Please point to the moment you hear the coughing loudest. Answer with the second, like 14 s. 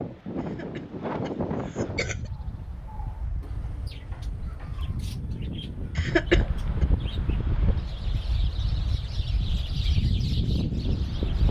6 s.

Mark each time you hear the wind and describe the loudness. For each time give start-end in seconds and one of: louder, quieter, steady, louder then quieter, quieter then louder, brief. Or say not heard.
0.0-11.4 quieter then louder.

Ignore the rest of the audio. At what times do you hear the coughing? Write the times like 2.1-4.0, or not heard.
0.4-2.3, 6.0-6.8.